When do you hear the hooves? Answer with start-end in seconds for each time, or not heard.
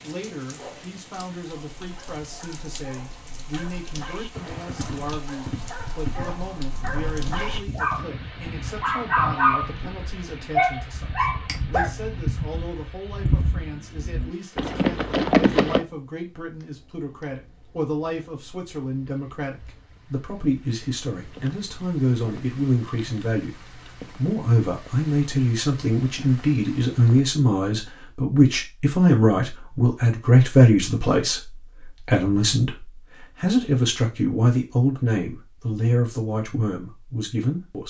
4.0-15.8.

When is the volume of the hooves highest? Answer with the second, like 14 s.
15 s.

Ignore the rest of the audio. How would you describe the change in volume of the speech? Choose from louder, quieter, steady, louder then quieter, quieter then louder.
louder.